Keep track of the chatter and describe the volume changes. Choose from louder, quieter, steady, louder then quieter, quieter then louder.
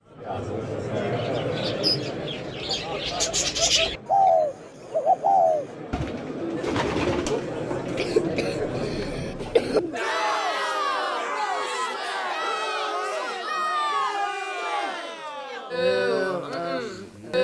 quieter then louder.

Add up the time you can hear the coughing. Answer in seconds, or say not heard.
2 s.